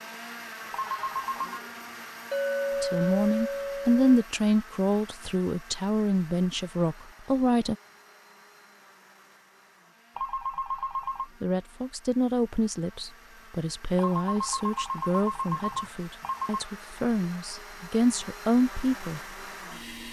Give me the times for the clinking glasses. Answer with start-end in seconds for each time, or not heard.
2.3-4.2.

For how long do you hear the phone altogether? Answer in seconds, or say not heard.
5 s.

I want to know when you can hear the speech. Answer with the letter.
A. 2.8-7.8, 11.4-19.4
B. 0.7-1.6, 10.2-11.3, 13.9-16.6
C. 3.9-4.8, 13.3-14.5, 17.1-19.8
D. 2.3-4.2
A.